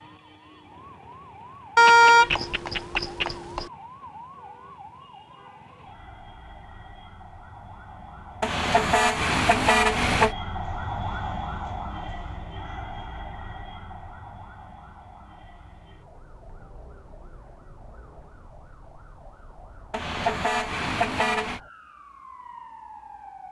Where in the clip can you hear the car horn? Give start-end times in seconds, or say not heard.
1.8-3.6, 8.4-10.3, 19.9-21.6.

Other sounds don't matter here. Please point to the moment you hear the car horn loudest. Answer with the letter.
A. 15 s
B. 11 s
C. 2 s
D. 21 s
C.